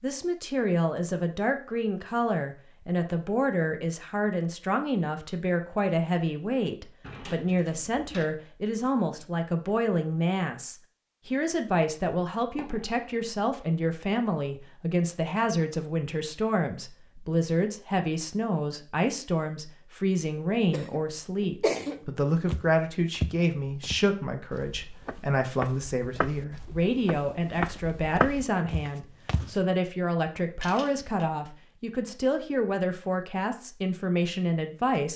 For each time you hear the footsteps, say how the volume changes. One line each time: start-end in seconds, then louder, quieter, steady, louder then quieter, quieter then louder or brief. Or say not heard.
22.4-29.6 quieter then louder.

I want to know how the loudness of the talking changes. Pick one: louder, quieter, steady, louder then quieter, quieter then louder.
steady.